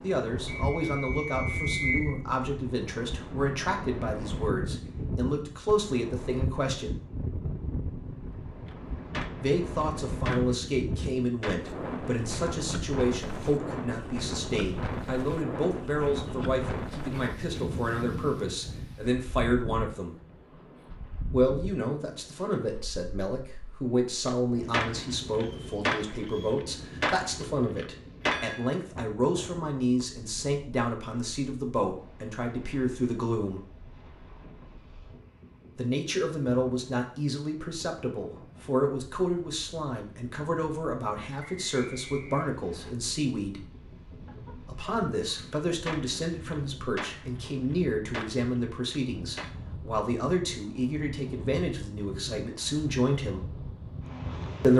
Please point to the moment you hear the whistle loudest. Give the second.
2 s.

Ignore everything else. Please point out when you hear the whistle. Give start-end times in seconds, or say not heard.
0.5-2.1, 25.4-26.6, 41.4-43.0.